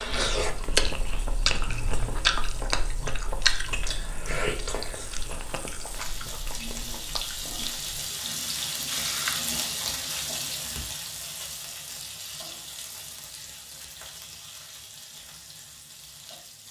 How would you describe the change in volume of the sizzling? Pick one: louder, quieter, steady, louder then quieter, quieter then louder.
louder then quieter.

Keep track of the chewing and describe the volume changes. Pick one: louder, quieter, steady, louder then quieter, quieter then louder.
quieter.